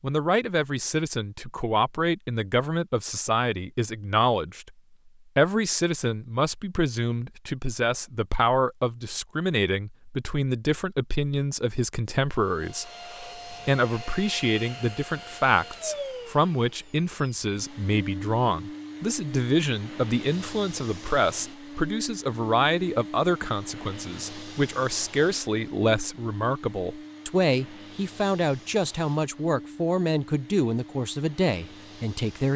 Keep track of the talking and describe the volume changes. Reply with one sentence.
The loudness of the talking stays about the same.